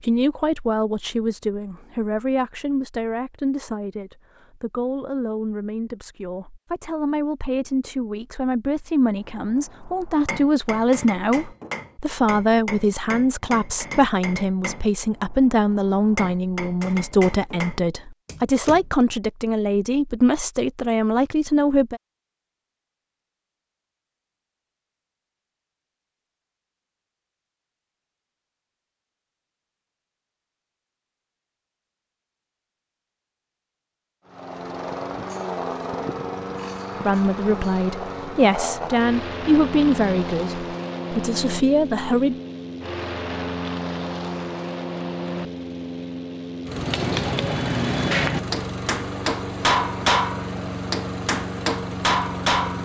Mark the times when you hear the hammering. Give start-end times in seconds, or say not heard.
9.2-18.9, 46.8-52.8.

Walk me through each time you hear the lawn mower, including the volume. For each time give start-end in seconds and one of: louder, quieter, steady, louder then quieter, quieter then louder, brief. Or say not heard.
34.2-52.8 steady.